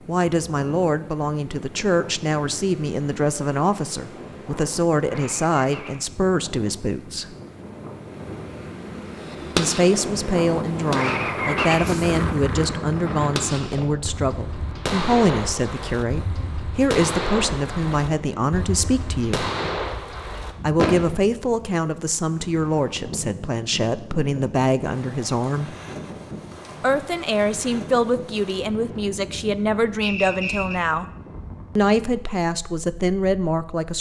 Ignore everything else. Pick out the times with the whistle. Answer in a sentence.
You can hear the whistle from 30.0 to 30.8 s.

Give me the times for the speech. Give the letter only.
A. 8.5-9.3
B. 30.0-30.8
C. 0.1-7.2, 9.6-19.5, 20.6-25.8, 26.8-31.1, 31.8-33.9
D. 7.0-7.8
C.